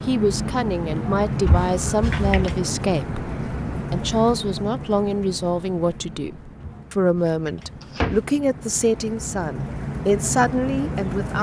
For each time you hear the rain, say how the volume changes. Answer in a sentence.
The rain can be heard from 0.0 to 11.3 s, getting quieter then louder.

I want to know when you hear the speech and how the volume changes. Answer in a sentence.
The speech can be heard from 0.1 to 11.3 s, at a steady volume.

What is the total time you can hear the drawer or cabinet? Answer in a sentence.
You can hear the drawer or cabinet for 3 seconds altogether.